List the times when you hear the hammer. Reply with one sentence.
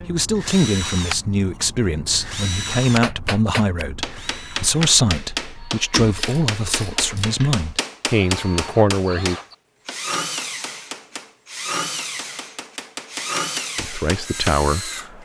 You can hear the hammer from 3.0 to 14.6 s.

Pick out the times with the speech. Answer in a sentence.
The speech can be heard from 0.0 to 9.3 s and from 13.8 to 15.2 s.